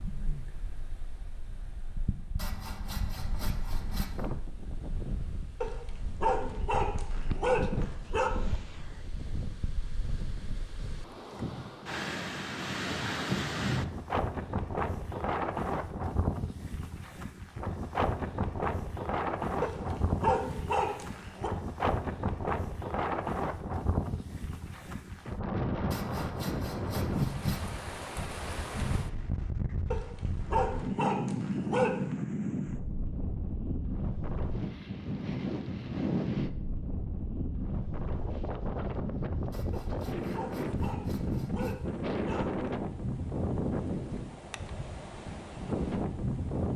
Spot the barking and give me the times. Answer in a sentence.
The barking can be heard from 5.6 to 8.3 s, from 19.6 to 21.5 s, from 29.9 to 32.1 s and from 39.7 to 42.5 s.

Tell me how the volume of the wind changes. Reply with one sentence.
The loudness of the wind goes up.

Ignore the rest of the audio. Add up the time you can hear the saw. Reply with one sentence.
You can hear the saw for 6 seconds altogether.